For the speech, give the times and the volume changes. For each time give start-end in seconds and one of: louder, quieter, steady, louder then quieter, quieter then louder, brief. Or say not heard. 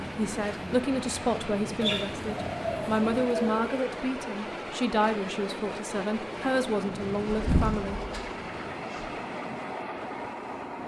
0.0-8.0 steady.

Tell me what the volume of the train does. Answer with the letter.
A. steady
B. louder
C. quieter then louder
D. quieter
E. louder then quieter
A.